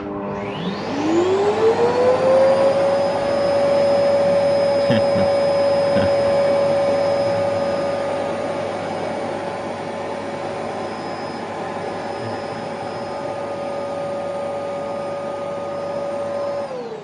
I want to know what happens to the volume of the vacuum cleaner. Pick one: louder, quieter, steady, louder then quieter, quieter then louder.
quieter.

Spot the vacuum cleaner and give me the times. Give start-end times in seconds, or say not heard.
0.0-16.9.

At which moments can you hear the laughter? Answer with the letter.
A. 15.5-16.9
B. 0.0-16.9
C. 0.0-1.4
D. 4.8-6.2
D.